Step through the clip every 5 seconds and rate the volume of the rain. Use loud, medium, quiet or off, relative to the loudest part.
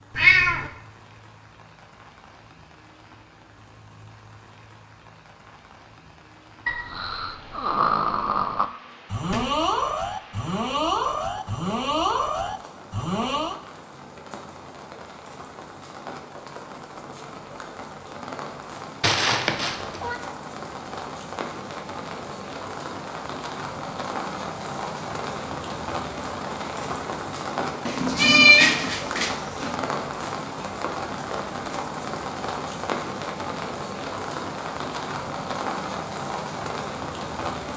quiet, quiet, quiet, medium, loud, loud, loud, loud.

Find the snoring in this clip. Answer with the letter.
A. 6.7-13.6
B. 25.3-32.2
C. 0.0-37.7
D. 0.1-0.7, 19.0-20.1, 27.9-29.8
A.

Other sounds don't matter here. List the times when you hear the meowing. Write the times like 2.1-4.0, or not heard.
0.1-0.7, 19.0-20.1, 27.9-29.8.